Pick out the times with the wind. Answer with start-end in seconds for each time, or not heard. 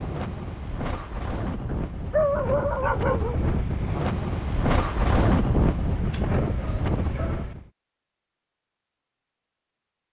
0.0-7.7.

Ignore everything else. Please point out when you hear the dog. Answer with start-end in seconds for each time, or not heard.
1.6-3.4, 6.1-7.5.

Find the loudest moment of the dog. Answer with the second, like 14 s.
2 s.